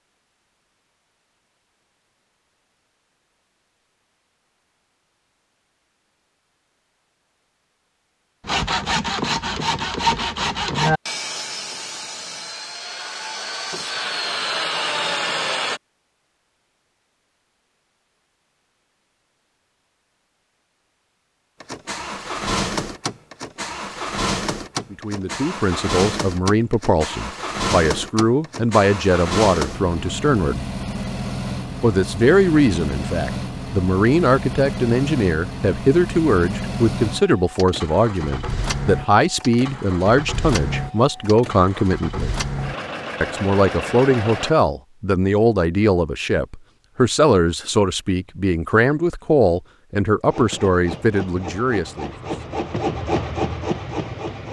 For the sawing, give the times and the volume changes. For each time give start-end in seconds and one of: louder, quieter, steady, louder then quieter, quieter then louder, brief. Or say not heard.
8.4-15.8 quieter then louder
50.2-54.4 louder.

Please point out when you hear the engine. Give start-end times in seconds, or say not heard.
21.6-44.5.